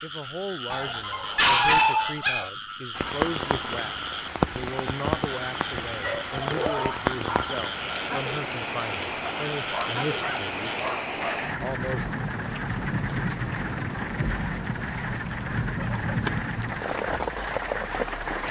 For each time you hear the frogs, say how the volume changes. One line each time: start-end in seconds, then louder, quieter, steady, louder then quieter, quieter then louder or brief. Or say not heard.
0.0-18.4 steady.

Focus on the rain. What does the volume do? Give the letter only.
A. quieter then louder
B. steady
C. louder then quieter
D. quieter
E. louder
B.